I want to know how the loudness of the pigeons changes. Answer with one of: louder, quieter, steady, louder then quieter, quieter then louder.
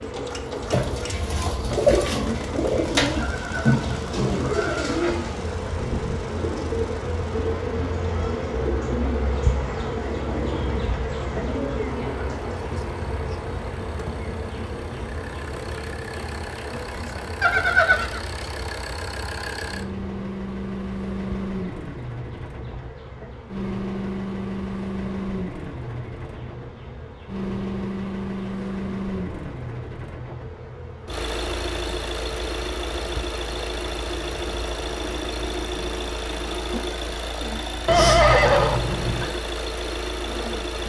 quieter.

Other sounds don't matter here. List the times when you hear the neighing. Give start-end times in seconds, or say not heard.
3.1-5.0, 17.4-18.2, 37.9-39.3.